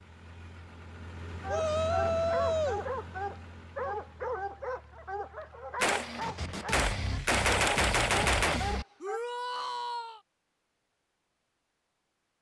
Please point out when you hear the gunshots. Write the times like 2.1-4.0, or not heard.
5.8-8.8.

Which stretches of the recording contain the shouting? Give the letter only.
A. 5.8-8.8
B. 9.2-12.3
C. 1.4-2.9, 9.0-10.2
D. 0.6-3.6
C.